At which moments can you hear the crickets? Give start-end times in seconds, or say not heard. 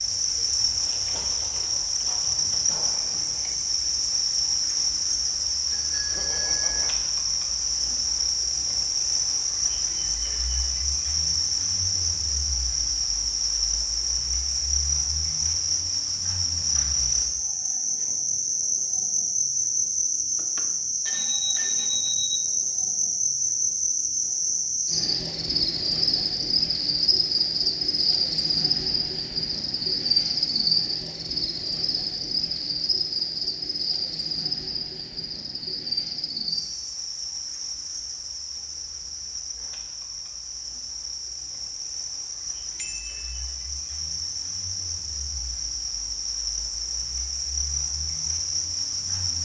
0.0-49.4.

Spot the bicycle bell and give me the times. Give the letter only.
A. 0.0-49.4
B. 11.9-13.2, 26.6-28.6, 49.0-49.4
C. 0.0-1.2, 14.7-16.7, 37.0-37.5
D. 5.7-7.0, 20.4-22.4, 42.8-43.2
D.